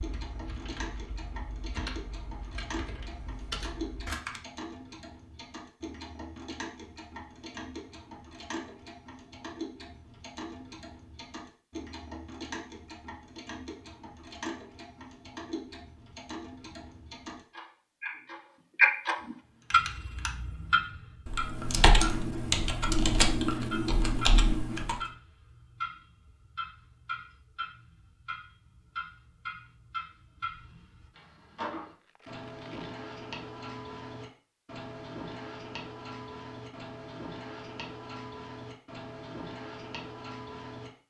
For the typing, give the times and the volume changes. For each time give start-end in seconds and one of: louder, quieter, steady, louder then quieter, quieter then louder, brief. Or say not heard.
0.0-4.4 louder
19.2-25.0 louder.